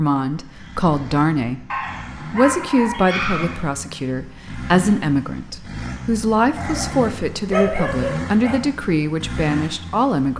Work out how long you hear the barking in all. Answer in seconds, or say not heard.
4 s.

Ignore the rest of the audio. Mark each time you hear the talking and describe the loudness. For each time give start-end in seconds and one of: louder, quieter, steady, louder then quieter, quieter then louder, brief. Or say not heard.
0.0-1.6 brief
2.3-10.3 steady.